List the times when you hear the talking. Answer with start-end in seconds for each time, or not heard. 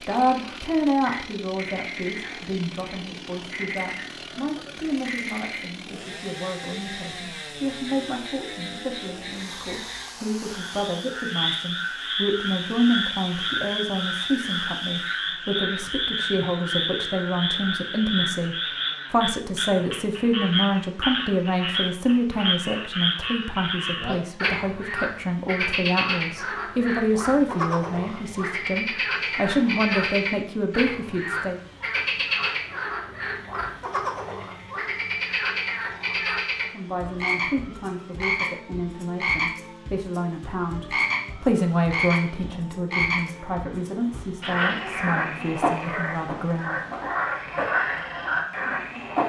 0.0-31.6, 36.6-46.8.